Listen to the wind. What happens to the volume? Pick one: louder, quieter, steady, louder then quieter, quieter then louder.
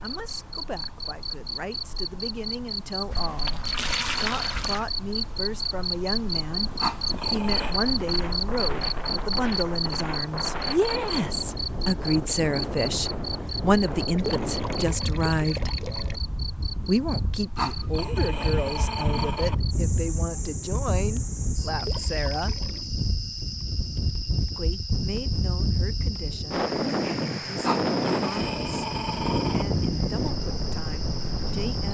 louder.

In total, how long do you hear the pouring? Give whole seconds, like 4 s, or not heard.
5 s.